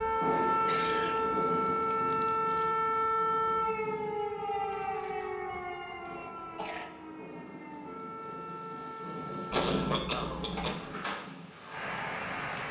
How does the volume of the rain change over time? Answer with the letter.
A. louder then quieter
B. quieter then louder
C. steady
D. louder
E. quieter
B.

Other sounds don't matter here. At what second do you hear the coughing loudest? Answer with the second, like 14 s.
10 s.